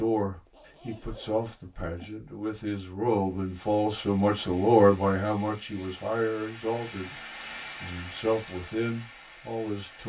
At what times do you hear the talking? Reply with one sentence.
You can hear the talking from 0.0 to 10.0 s.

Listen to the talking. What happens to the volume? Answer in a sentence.
The loudness of the talking goes up, then down.